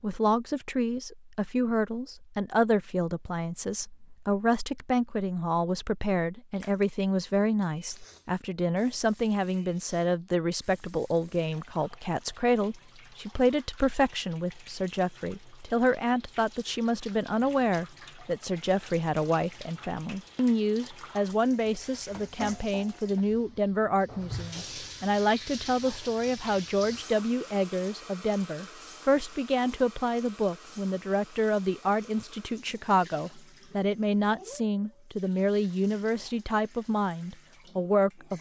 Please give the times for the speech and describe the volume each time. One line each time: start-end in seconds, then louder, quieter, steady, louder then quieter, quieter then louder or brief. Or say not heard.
0.0-38.3 steady.